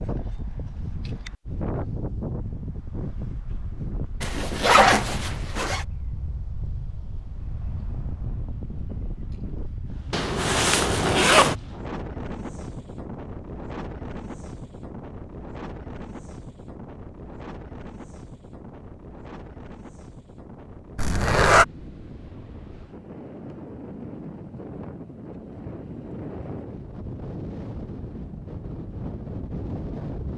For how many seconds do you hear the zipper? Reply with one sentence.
You can hear the zipper for 4 seconds altogether.